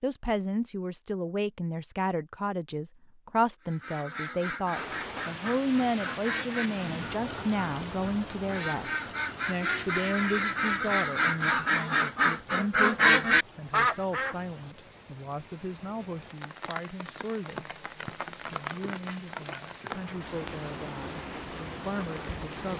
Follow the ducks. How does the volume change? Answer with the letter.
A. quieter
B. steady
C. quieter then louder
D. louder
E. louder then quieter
D.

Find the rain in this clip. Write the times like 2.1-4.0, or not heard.
4.8-22.7.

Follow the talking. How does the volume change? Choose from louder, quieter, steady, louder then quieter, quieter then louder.
quieter.